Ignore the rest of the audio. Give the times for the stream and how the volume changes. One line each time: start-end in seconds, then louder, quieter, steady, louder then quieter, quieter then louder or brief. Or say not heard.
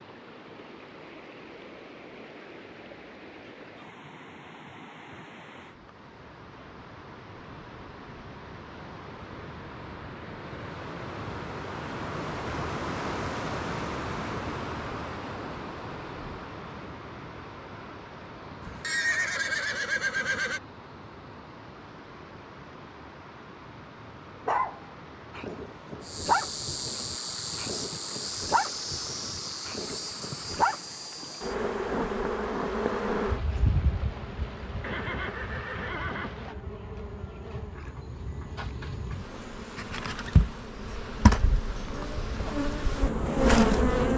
0.0-36.5 louder then quieter.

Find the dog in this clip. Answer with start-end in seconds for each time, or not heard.
24.4-30.8.